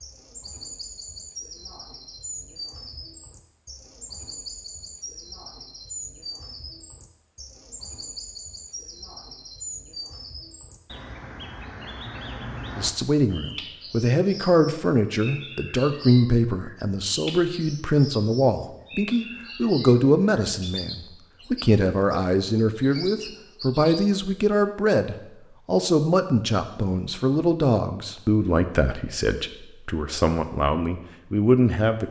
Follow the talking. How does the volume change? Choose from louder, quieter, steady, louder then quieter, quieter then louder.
steady.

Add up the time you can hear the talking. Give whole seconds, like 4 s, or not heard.
19 s.